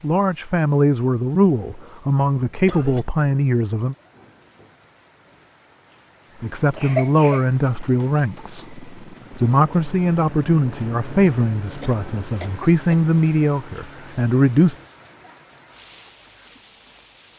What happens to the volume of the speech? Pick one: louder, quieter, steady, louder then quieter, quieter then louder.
steady.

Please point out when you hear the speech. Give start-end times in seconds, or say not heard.
0.0-4.0, 6.4-14.8.